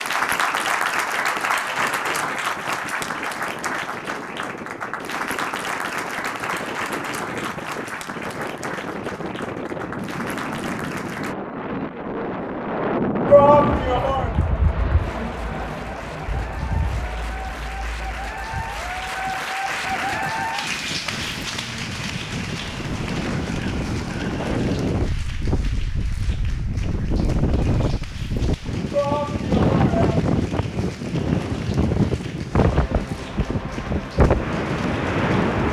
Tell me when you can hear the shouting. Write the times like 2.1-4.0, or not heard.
13.2-14.3, 28.9-30.2.